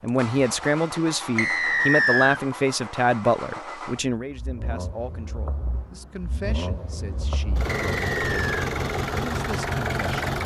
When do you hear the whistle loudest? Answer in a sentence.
The loudest moment of the whistle is at 2 seconds.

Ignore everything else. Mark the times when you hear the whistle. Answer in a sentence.
The whistle can be heard from 1.4 to 2.4 s and from 7.7 to 8.7 s.